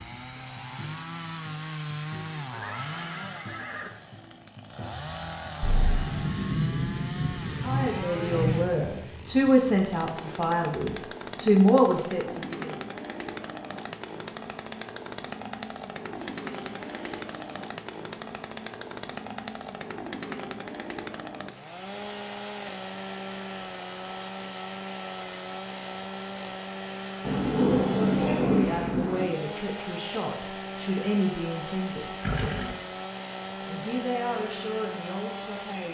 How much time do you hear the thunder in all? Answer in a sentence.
You can hear the thunder for 5 seconds altogether.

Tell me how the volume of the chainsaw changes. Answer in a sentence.
The volume of the chainsaw stays about the same.